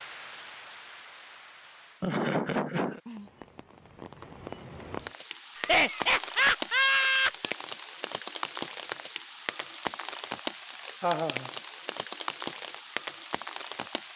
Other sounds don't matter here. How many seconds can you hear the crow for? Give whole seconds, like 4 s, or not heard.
not heard.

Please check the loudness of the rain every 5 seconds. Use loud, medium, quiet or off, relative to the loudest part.
medium, loud, loud.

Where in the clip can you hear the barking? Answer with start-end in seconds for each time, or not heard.
not heard.